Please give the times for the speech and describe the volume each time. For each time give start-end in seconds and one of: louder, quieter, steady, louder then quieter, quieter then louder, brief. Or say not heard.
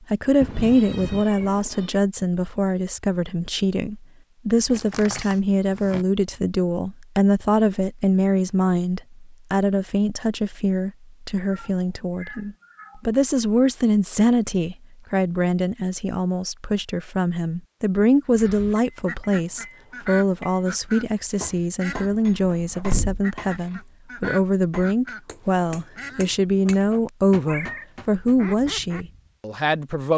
0.1-30.1 steady.